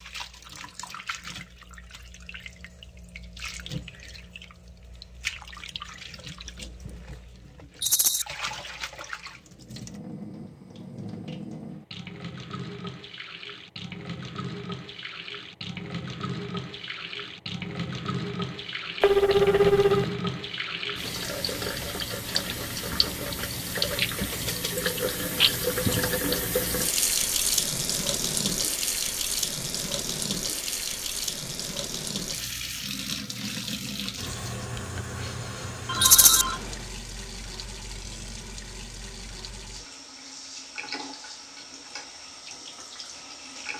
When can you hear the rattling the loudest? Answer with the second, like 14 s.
36 s.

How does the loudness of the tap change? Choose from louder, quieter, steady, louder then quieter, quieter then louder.
louder then quieter.